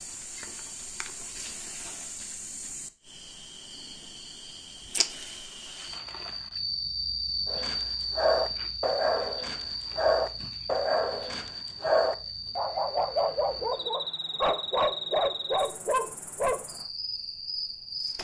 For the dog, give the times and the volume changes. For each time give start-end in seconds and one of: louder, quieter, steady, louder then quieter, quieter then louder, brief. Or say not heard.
7.5-16.6 steady.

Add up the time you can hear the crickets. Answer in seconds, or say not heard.
18 s.